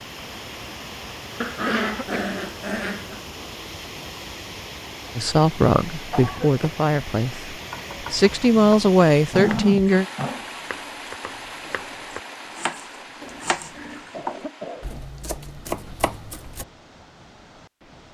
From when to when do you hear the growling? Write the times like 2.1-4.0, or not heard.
1.4-3.2, 9.3-10.4, 13.2-14.1.